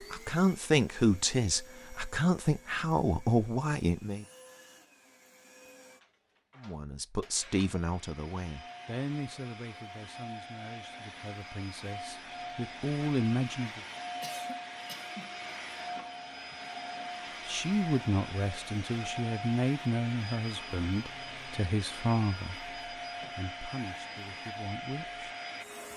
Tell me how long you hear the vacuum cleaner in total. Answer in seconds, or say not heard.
26 s.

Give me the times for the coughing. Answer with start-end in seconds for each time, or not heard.
14.2-15.3.